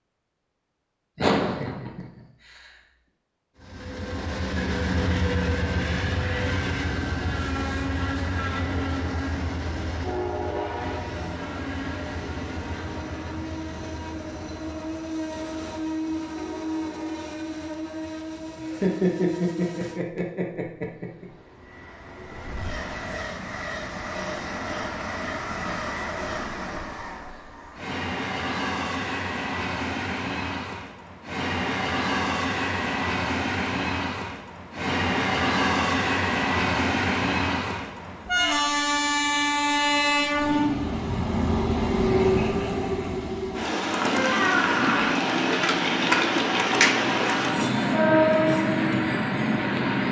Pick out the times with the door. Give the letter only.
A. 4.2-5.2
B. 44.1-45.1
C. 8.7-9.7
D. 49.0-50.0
B.